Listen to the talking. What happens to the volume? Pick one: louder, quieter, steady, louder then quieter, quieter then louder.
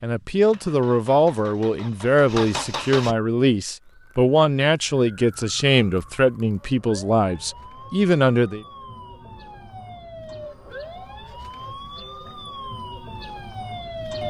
steady.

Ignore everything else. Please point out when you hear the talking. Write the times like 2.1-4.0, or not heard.
0.0-8.6.